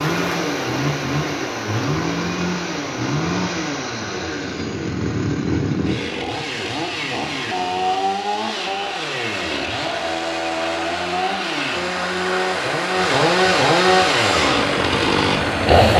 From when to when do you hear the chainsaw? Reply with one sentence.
The chainsaw can be heard from 0.0 to 15.9 s.